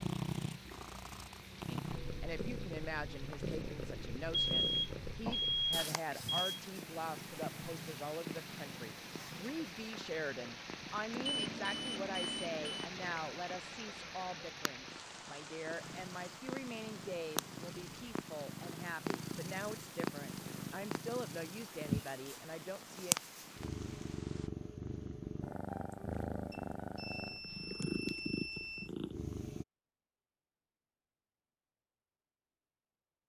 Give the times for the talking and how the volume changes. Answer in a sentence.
The talking can be heard from 1.7 to 23.1 s, at a steady volume.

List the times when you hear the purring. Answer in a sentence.
You can hear the purring from 0.0 to 29.6 s.